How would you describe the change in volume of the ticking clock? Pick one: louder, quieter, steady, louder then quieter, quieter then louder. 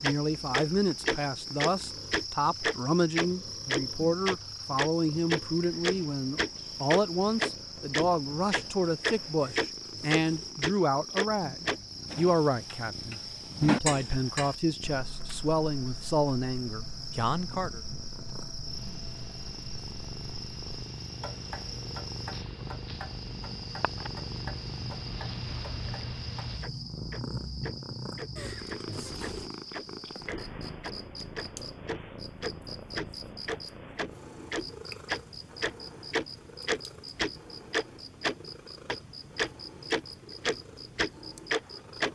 quieter then louder.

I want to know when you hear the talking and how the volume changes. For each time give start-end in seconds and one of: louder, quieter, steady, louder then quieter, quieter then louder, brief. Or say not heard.
0.0-17.8 steady.